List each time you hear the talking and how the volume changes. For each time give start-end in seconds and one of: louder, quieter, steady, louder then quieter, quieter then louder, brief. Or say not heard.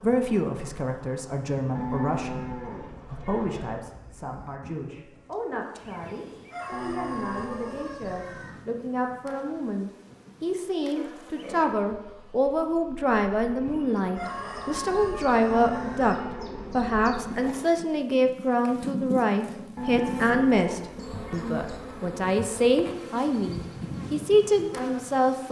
0.0-25.4 louder.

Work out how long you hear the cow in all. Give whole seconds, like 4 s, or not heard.
8 s.